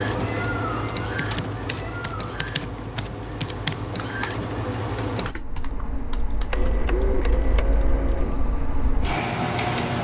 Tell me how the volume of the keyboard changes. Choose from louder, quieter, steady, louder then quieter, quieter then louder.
louder then quieter.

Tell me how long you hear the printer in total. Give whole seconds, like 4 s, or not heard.
10 s.